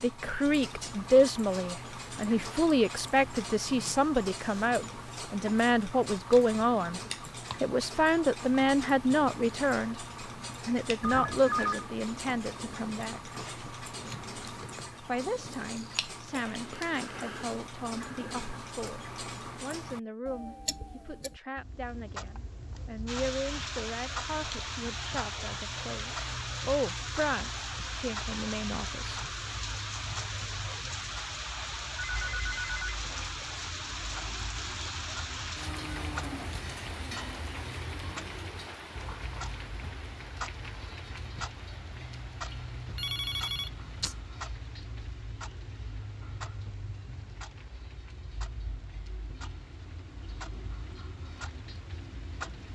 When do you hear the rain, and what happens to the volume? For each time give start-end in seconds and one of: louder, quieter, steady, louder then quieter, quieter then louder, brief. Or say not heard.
23.1-52.7 quieter.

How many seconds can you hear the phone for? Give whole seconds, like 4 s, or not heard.
3 s.